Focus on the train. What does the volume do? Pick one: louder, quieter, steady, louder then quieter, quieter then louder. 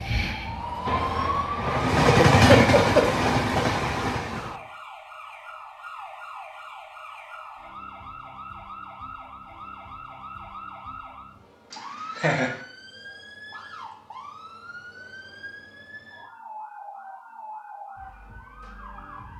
louder then quieter.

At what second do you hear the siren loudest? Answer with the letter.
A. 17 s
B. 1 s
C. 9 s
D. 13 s
B.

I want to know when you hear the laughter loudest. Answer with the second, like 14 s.
3 s.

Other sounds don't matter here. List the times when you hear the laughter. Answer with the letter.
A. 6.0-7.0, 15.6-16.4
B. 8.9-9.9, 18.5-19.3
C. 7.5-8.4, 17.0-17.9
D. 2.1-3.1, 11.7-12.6
D.